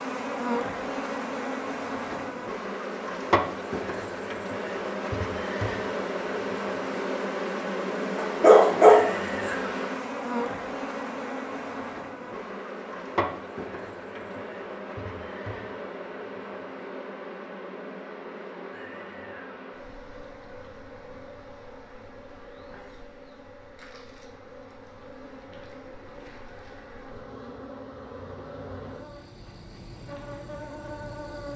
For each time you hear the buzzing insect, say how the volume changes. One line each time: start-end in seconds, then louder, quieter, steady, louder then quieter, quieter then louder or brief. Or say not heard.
0.0-31.5 quieter.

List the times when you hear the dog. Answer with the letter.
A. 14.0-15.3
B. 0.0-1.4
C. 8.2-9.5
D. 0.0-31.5
C.